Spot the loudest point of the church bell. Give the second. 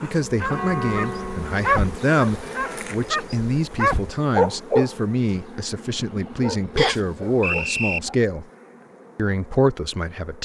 1 s.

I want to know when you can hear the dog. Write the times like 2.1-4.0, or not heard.
0.2-8.2.